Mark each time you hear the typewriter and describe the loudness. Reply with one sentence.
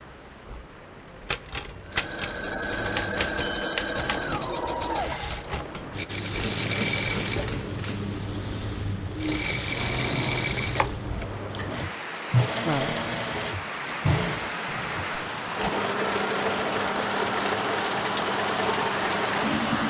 The typewriter can be heard from 1.2 to 8.2 s, getting quieter.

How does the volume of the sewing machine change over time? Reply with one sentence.
The loudness of the sewing machine stays about the same.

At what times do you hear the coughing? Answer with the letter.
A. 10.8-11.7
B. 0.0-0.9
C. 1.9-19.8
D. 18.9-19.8
A.